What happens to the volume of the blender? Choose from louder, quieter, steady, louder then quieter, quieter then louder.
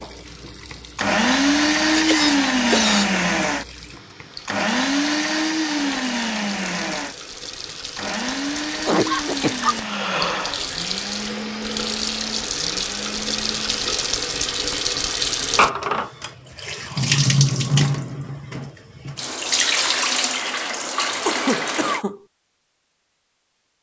quieter.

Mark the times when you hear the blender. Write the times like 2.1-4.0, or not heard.
0.0-13.8.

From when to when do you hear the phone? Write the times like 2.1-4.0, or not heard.
not heard.